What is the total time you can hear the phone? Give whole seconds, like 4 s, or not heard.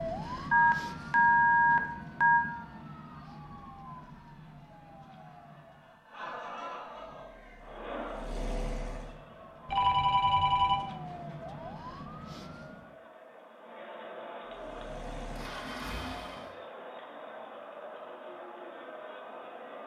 4 s.